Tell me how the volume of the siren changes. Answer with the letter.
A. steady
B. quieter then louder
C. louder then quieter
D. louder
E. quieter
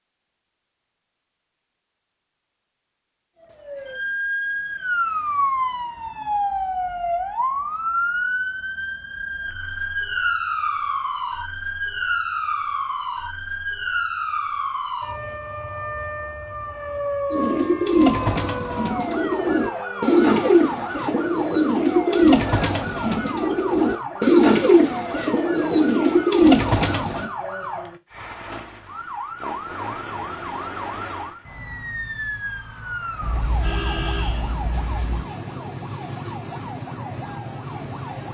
E.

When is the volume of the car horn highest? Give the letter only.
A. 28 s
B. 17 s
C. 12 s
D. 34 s
D.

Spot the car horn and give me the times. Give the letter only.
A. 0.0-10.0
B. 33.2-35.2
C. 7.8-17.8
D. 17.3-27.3
B.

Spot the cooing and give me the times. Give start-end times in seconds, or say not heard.
17.3-27.3.